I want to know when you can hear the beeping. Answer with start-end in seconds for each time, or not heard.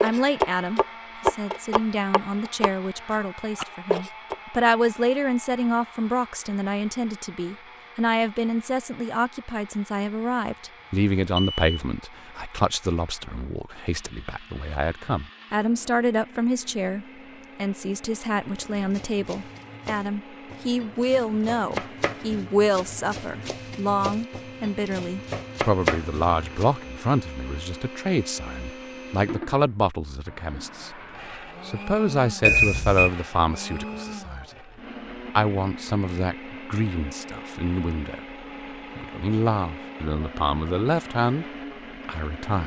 11.3-11.8, 32.4-33.1.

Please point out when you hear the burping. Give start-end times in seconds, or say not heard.
not heard.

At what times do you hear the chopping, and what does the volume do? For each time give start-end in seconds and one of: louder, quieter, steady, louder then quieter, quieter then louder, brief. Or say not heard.
0.0-4.3 quieter then louder
18.6-26.8 louder.